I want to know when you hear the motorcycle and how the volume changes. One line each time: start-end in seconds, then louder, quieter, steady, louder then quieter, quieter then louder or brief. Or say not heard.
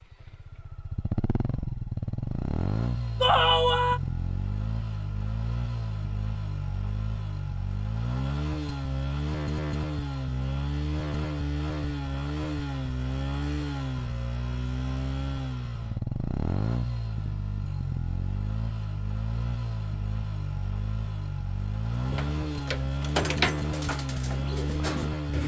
0.0-25.4 steady.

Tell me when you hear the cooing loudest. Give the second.
23 s.